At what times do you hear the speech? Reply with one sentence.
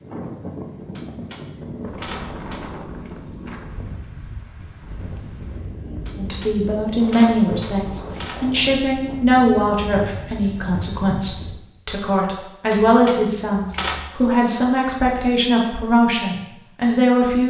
The speech can be heard from 6.2 to 17.4 s.